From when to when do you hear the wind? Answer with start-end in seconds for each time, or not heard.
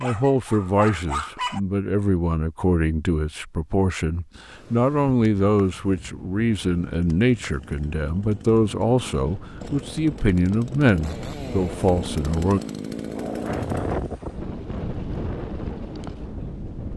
4.5-16.9.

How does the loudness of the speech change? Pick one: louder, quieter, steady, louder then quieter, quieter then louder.
steady.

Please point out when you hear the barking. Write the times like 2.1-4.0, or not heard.
0.0-1.6.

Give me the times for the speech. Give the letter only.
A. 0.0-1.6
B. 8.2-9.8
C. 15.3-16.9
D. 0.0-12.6
D.